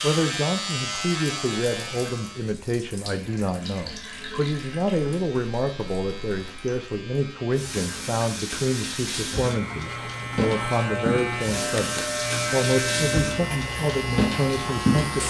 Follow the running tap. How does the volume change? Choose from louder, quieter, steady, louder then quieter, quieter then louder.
louder.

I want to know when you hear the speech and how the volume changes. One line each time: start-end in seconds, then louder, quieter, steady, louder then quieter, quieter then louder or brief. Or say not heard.
0.0-15.2 steady.